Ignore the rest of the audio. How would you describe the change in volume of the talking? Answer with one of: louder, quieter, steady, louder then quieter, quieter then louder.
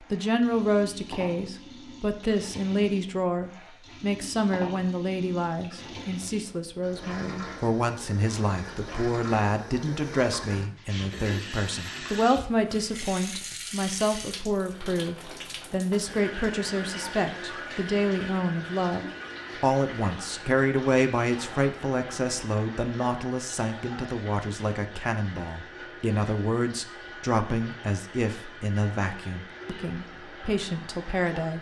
steady.